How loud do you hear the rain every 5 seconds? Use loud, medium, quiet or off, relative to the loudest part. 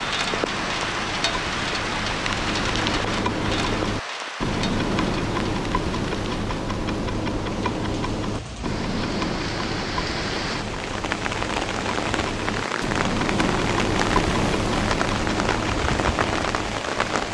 loud, medium, loud, loud.